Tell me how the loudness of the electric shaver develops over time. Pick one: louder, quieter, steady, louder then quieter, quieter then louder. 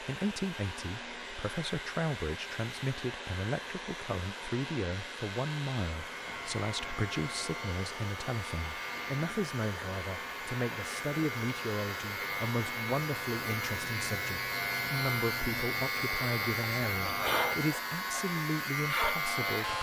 louder.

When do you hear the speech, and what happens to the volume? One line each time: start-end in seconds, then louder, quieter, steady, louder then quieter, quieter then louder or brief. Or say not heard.
0.0-19.7 steady.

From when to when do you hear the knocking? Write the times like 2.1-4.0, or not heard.
not heard.